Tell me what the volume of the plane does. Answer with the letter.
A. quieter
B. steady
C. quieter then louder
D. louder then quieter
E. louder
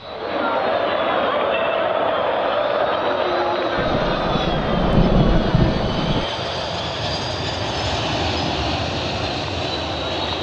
E.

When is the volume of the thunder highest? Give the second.
5 s.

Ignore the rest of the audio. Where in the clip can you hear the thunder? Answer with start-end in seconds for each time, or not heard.
3.8-6.2.